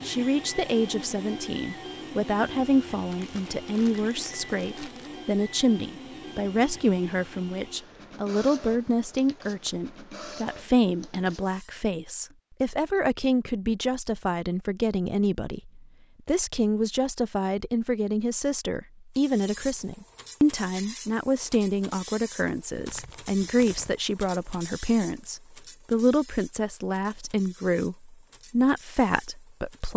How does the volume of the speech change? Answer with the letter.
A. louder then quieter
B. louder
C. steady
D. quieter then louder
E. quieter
C.